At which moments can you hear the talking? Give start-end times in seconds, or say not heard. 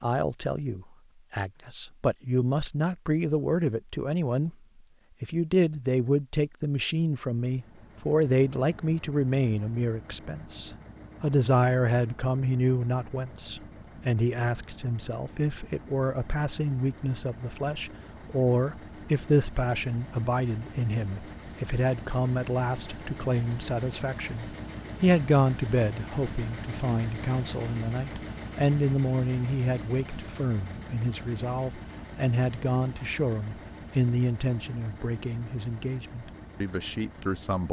0.0-4.5, 5.2-37.6.